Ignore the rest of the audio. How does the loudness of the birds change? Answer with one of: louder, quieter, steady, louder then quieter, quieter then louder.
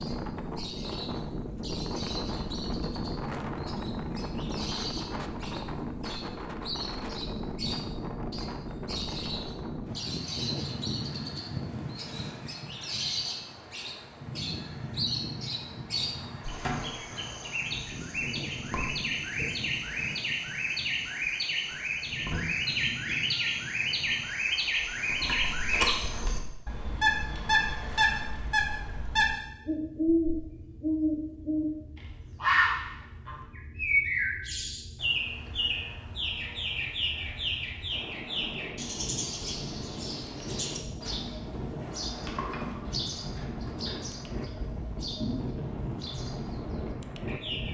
louder then quieter.